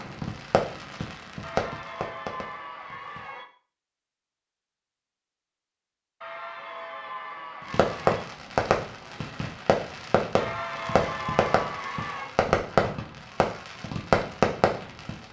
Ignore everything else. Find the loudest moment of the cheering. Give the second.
11 s.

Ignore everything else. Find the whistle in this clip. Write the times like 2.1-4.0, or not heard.
not heard.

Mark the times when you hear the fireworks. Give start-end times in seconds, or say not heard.
0.0-3.2, 7.7-15.2.